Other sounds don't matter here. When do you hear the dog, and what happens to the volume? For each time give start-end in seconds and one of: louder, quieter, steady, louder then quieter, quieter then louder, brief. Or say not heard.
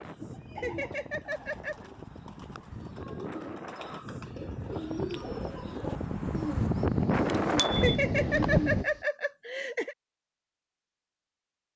not heard.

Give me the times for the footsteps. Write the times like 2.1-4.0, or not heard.
not heard.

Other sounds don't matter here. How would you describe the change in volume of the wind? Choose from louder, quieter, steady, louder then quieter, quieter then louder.
louder.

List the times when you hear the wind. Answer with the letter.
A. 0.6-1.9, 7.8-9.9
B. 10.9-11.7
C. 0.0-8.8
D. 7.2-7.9
C.